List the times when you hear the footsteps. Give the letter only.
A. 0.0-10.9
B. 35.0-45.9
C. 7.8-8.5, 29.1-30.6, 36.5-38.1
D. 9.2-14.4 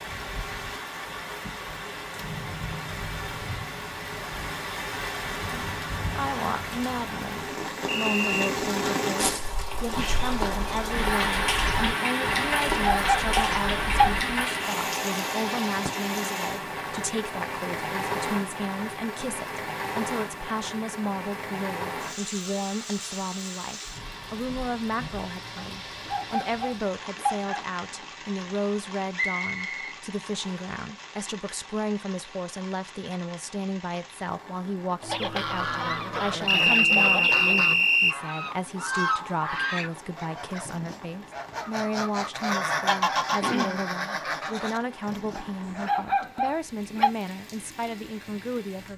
D.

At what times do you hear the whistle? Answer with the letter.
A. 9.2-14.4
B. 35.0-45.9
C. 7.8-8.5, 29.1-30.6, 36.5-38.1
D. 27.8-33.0
C.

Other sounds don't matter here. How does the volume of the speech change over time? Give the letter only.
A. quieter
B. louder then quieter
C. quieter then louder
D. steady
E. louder
D.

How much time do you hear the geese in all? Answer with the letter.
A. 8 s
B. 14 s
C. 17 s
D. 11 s
D.